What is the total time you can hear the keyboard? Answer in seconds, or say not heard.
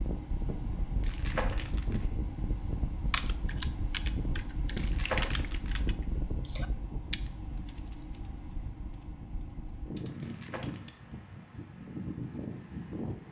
8 s.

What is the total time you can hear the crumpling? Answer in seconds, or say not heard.
3 s.